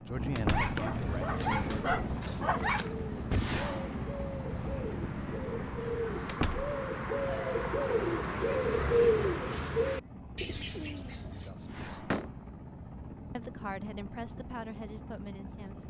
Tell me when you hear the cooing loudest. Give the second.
9 s.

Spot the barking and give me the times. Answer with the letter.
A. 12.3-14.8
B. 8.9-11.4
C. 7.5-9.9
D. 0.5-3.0
D.